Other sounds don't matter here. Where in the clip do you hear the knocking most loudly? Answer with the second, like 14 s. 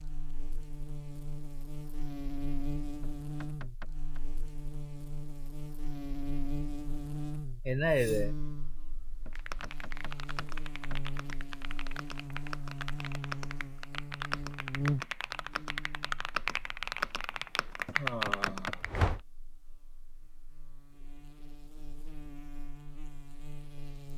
19 s.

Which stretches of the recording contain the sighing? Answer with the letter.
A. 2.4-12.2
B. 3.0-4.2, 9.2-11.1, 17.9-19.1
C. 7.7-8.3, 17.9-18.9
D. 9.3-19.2
C.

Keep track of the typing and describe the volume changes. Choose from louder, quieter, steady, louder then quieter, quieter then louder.
louder.